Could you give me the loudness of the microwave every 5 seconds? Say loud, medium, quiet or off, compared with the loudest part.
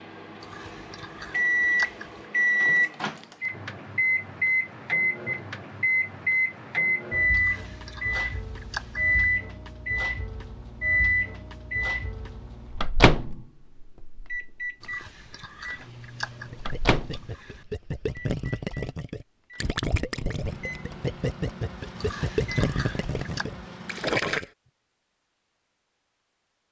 loud, loud, loud, medium, quiet, off.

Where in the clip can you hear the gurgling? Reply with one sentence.
The gurgling can be heard from 16.4 to 24.4 s.